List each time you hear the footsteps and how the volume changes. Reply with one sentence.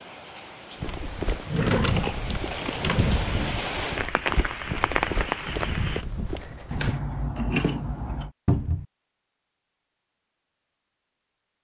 You can hear the footsteps from 0.8 to 7.0 s, at a steady volume.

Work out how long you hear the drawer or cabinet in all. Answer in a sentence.
You can hear the drawer or cabinet for 2 seconds altogether.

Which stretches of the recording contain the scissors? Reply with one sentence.
The scissors can be heard from 1.9 to 2.9 s and from 6.7 to 8.3 s.